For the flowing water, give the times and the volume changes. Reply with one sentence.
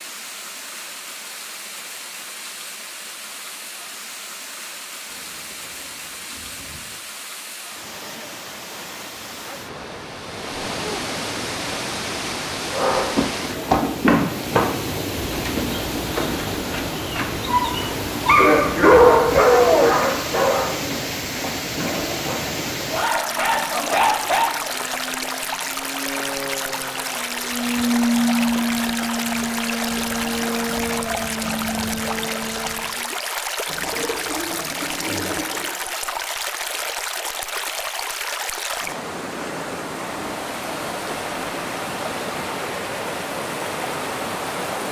You can hear the flowing water from 0.0 to 44.8 s, getting louder.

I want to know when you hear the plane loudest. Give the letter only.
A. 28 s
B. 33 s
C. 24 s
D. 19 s
A.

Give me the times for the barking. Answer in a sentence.
The barking can be heard from 12.7 to 24.5 s.